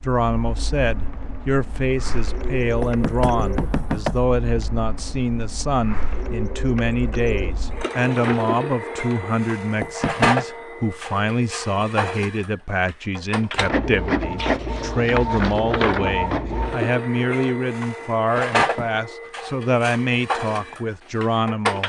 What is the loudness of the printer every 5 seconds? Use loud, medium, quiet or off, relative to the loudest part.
medium, medium, loud, loud, loud.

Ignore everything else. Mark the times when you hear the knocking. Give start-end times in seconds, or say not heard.
2.8-4.2, 9.8-10.4, 18.4-19.0.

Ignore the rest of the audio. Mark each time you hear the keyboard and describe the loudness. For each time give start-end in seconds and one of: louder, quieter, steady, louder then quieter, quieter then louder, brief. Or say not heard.
not heard.